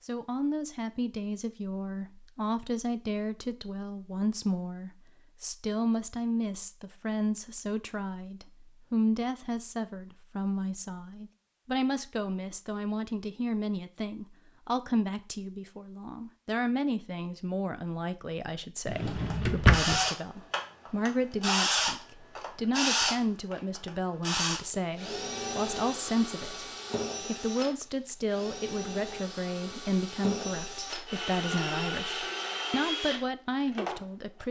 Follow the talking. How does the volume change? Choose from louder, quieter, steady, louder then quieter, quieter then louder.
steady.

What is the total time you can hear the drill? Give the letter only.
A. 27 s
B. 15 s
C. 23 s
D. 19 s
B.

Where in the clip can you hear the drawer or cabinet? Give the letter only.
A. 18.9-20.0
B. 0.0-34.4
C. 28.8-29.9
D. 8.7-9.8
A.